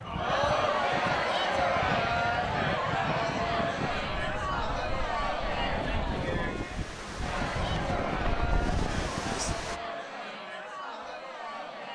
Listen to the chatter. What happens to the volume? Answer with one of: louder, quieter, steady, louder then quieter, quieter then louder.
quieter.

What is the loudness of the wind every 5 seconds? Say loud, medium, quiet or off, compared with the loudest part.
loud, loud, off.